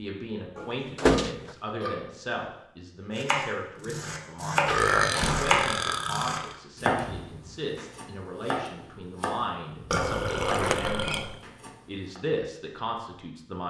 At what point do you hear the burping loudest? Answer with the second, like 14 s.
5 s.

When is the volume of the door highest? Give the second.
1 s.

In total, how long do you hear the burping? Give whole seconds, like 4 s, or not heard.
5 s.